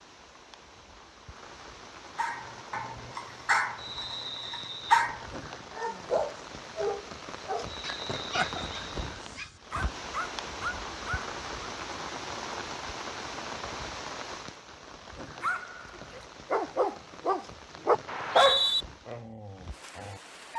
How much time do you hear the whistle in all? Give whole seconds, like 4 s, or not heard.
3 s.